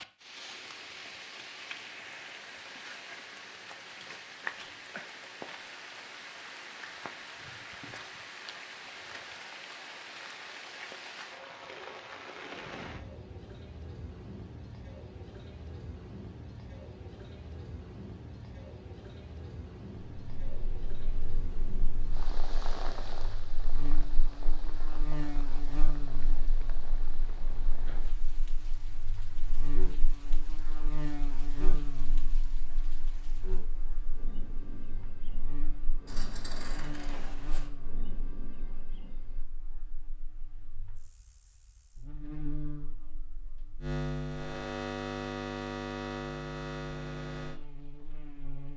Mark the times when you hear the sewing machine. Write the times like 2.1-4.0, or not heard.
not heard.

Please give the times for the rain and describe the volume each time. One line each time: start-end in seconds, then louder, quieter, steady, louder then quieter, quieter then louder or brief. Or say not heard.
0.0-39.5 quieter.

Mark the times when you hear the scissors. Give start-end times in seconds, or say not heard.
36.0-37.7.